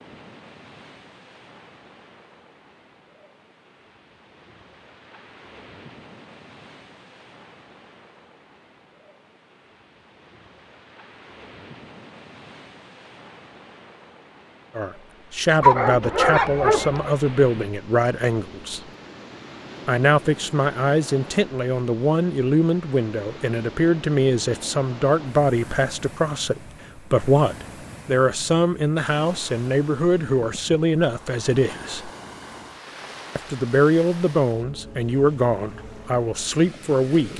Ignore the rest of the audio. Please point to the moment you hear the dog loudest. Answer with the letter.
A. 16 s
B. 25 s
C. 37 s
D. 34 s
A.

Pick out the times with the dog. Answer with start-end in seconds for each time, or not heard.
15.6-17.1.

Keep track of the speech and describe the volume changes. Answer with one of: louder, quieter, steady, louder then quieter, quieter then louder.
steady.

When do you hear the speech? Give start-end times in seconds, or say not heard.
14.8-18.8, 19.9-32.1, 33.4-37.3.